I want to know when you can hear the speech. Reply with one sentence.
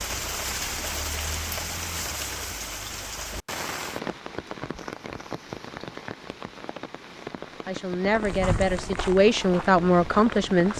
You can hear the speech from 7.7 to 10.7 s.